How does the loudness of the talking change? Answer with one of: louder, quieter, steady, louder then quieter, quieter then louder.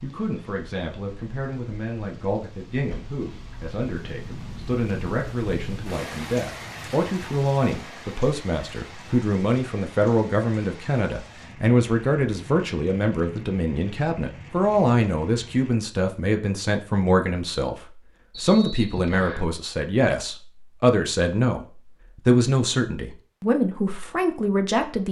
louder.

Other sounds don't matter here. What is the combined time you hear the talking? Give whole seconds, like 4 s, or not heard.
25 s.